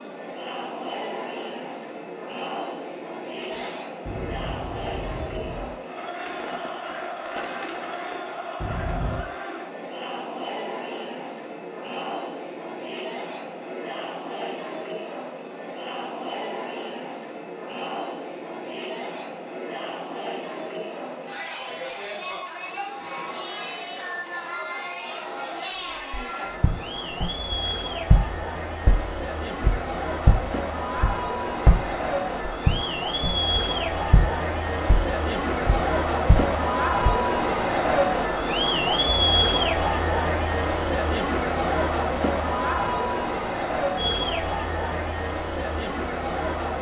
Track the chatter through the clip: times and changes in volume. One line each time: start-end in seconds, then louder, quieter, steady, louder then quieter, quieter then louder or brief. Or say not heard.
0.0-46.7 louder.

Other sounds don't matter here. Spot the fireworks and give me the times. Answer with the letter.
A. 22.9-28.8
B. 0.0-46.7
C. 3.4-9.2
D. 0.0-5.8
C.